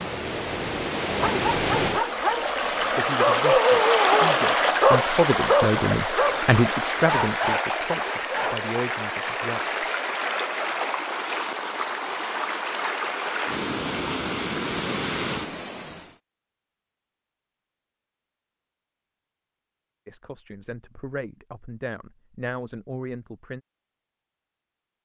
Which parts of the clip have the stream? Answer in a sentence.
You can hear the stream from 0.0 to 16.1 s.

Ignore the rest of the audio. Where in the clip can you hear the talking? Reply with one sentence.
The talking can be heard from 3.0 to 9.6 s and from 20.1 to 23.6 s.